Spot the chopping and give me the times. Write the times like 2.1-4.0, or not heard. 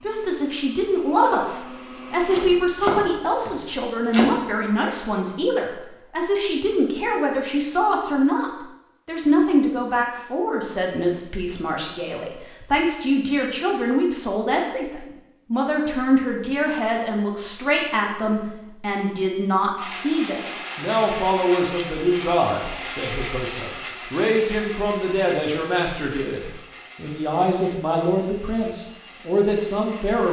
2.3-4.3.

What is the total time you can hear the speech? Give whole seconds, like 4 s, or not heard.
30 s.